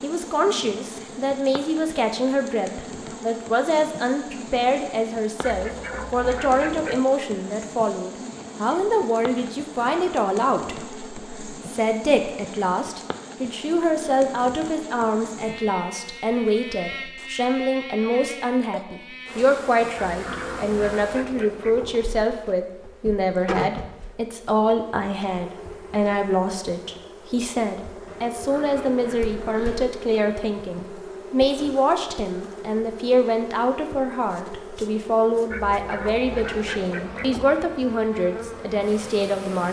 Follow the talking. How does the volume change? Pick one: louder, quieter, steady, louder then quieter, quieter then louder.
steady.